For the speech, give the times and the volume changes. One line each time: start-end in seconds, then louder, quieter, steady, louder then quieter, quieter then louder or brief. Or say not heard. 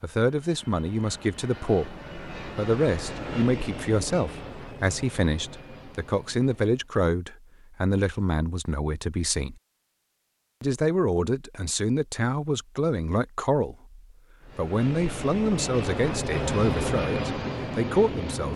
0.0-9.6 steady
10.6-18.5 steady.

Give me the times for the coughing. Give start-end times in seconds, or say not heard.
not heard.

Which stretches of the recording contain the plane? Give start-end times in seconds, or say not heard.
0.0-7.0, 14.4-18.5.